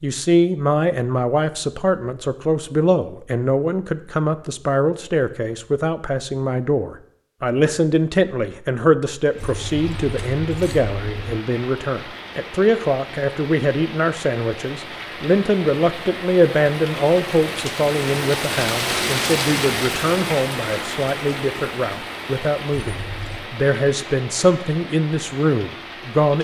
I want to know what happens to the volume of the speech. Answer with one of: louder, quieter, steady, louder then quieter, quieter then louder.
steady.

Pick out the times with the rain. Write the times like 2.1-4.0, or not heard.
9.2-26.4.